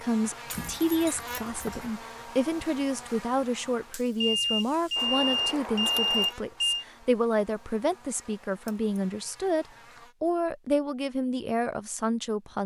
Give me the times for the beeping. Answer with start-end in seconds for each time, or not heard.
4.2-6.8.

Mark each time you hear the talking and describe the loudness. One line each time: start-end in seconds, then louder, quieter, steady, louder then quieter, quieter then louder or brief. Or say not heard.
0.0-12.6 steady.